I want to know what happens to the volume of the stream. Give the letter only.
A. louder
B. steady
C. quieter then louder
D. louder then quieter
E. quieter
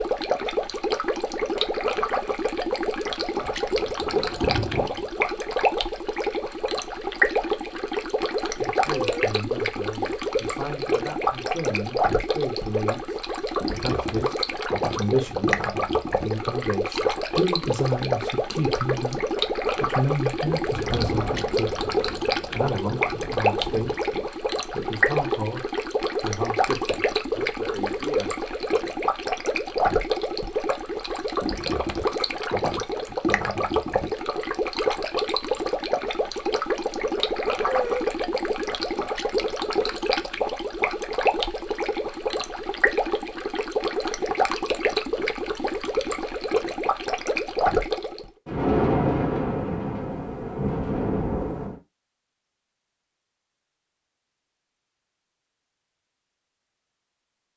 B.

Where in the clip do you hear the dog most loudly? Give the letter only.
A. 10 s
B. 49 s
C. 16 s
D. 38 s
D.